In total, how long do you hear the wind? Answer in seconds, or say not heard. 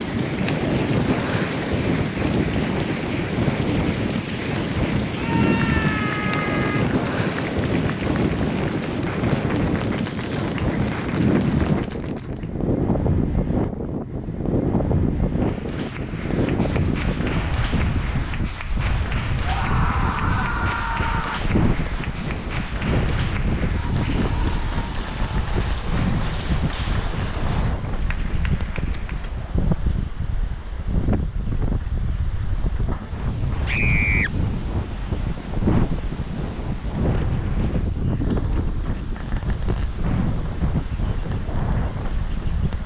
43 s.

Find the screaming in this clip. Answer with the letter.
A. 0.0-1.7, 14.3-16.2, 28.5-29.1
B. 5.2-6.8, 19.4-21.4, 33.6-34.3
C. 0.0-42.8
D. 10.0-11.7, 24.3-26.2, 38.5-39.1
B.